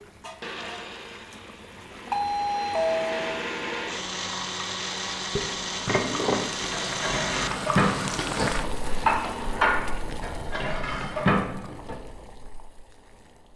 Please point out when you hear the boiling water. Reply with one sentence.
The boiling water can be heard from 0.0 to 13.5 s.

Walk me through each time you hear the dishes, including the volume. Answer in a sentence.
You can hear the dishes from 5.3 to 11.9 s, at a steady volume.